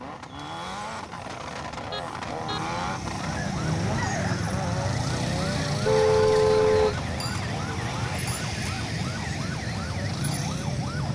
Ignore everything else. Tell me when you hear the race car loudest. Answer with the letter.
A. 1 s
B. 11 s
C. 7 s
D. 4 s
D.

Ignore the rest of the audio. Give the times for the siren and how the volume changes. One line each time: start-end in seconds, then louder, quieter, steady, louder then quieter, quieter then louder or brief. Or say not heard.
0.1-11.0 louder.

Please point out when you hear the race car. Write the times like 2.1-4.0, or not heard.
0.0-11.0.